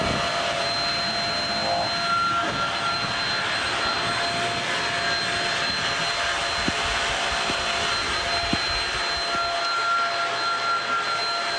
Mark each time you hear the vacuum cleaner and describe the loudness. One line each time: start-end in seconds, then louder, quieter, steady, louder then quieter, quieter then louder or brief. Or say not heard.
0.0-11.5 steady.